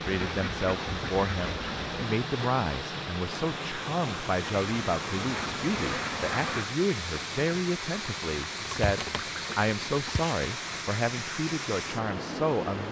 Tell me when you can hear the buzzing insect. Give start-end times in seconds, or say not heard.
not heard.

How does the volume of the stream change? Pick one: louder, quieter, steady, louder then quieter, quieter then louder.
steady.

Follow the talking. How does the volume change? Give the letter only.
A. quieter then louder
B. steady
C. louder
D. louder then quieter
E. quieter
B.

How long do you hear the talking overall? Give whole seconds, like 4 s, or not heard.
13 s.